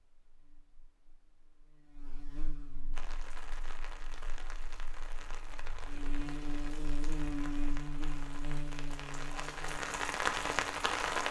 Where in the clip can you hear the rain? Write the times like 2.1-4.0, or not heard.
2.9-11.2.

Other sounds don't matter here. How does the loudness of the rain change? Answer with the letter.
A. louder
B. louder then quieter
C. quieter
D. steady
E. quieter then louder
A.